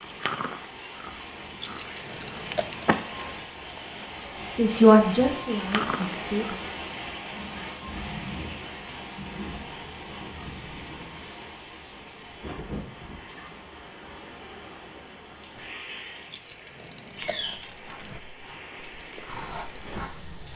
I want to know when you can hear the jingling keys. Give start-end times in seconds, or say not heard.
1.6-3.5, 16.3-18.2.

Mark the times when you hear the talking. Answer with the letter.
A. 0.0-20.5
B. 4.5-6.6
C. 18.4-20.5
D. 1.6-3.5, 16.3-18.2
B.